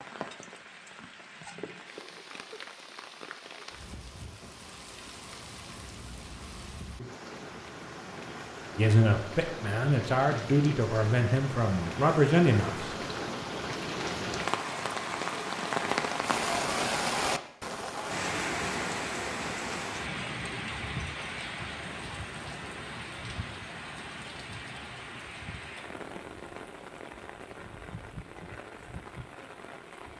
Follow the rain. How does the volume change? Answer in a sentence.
The loudness of the rain goes up, then down.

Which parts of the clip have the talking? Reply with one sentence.
You can hear the talking from 8.8 to 12.9 s.